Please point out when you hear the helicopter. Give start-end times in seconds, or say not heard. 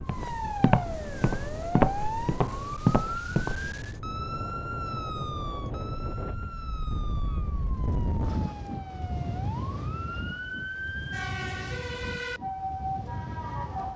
not heard.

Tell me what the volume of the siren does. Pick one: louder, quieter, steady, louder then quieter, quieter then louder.
quieter then louder.